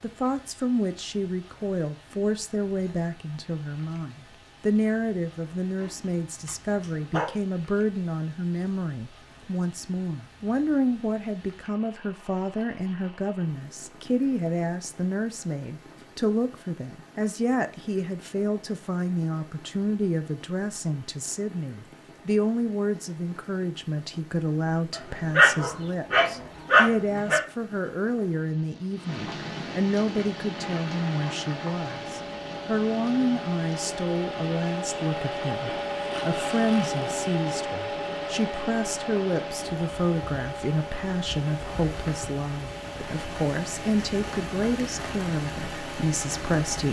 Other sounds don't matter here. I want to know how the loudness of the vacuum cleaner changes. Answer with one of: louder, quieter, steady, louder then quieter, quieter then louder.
louder then quieter.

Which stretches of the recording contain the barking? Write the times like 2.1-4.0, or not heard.
5.8-7.3, 25.3-27.4.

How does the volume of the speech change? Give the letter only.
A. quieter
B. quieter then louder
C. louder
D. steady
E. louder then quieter
D.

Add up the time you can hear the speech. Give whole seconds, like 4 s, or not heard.
47 s.